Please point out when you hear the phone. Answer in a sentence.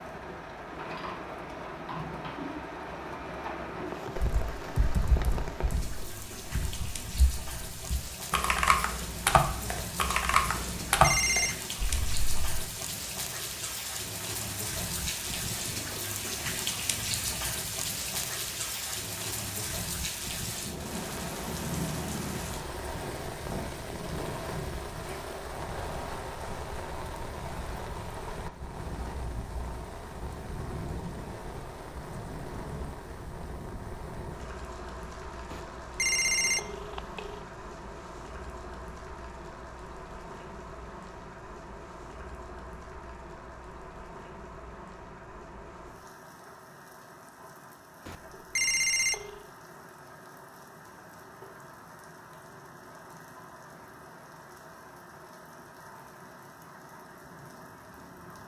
The phone can be heard from 10.6 to 11.6 s, from 35.5 to 37.5 s and from 48.0 to 49.5 s.